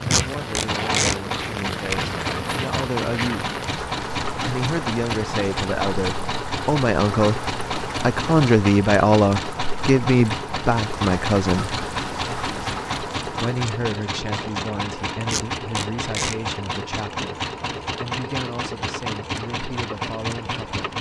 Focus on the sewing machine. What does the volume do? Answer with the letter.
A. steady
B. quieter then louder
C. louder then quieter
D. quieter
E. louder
A.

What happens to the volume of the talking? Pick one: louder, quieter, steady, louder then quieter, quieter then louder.
louder then quieter.